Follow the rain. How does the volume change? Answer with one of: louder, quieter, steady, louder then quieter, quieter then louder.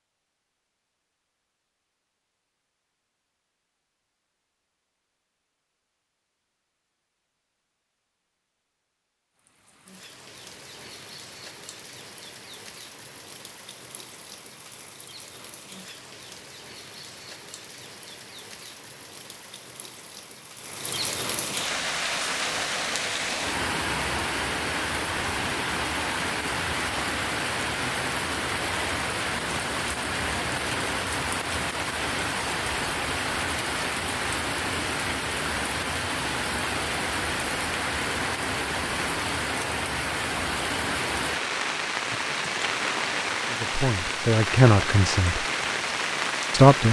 louder.